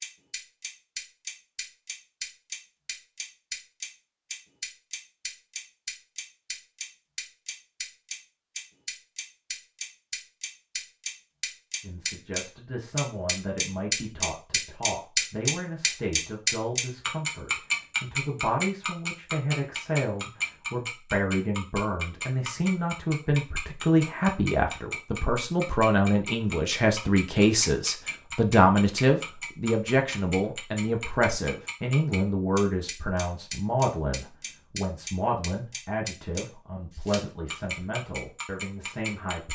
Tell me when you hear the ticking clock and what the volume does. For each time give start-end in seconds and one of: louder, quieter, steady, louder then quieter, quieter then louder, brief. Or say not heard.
0.0-39.5 louder then quieter.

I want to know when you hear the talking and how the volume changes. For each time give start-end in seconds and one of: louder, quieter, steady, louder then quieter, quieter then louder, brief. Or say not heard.
11.8-39.5 louder then quieter.